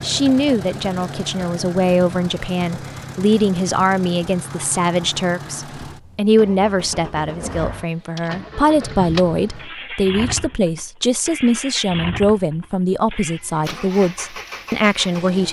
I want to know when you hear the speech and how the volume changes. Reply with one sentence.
You can hear the speech from 0.0 to 15.4 s, at a steady volume.